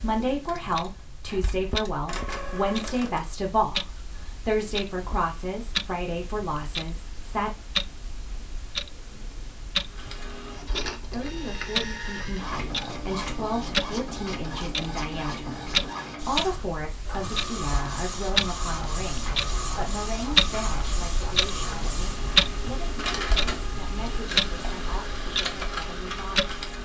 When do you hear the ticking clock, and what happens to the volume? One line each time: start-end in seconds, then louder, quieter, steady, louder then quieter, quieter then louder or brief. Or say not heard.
0.0-26.8 louder.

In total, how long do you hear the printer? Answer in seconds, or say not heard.
20 s.